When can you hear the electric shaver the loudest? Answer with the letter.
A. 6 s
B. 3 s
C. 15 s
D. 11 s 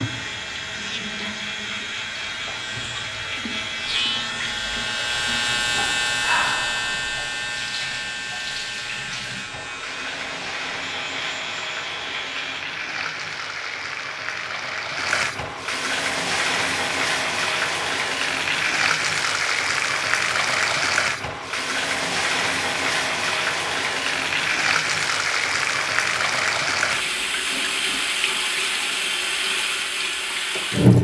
A.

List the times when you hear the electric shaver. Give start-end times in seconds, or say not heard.
0.0-12.7.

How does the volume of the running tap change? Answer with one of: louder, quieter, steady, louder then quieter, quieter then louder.
louder.